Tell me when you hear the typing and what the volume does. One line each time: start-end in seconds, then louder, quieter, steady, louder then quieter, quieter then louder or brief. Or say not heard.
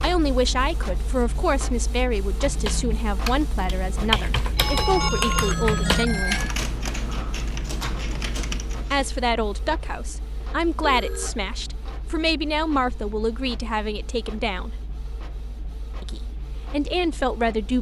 2.4-9.1 louder then quieter.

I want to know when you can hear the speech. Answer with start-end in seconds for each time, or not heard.
0.0-6.4, 8.9-14.7, 16.0-17.7.